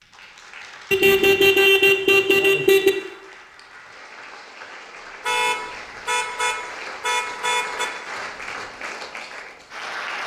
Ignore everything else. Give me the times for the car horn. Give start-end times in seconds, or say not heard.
0.9-2.9, 5.2-7.9.